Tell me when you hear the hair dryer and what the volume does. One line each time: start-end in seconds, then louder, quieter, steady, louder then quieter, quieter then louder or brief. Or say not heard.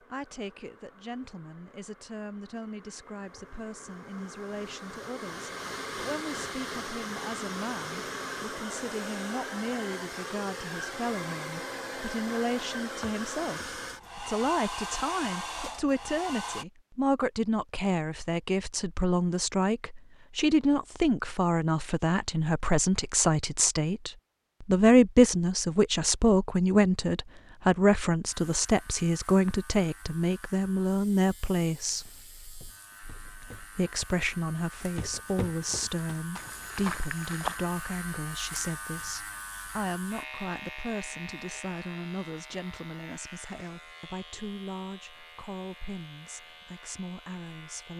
0.0-16.6 louder.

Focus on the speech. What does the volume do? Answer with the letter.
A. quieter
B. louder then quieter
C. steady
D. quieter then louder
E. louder
B.